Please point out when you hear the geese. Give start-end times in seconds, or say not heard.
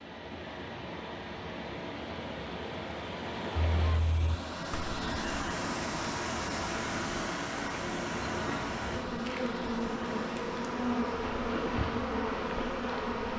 3.7-5.5.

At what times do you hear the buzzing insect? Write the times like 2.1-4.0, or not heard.
8.1-13.3.